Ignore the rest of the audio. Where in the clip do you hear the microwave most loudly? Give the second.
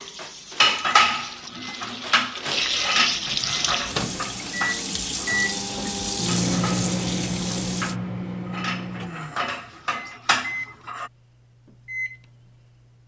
7 s.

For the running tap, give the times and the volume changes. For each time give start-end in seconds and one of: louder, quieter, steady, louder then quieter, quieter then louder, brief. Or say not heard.
0.0-8.0 louder.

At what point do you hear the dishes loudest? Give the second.
1 s.